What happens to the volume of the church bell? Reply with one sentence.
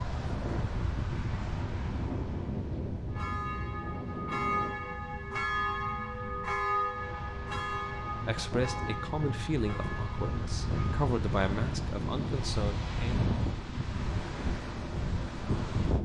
The volume of the church bell goes down.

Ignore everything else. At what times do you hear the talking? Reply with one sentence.
The talking can be heard from 8.2 to 13.2 s.